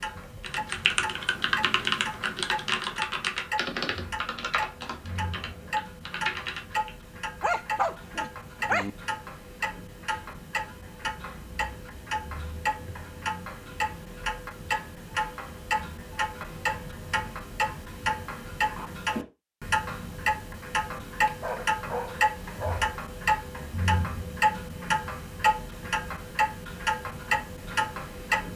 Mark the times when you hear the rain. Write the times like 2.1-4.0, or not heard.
not heard.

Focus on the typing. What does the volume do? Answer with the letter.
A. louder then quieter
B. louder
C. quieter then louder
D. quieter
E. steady
D.